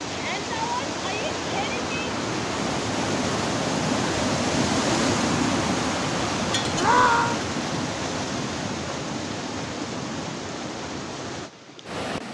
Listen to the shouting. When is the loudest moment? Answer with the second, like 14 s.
7 s.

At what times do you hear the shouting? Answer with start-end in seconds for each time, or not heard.
0.1-1.9, 6.8-7.4.